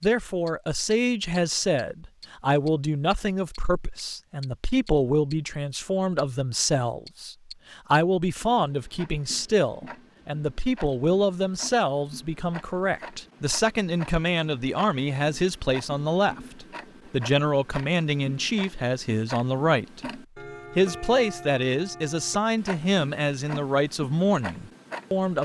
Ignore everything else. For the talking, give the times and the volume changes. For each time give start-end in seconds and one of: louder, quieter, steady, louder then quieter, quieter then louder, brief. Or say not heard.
0.0-25.3 steady.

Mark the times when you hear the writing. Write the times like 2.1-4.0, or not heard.
not heard.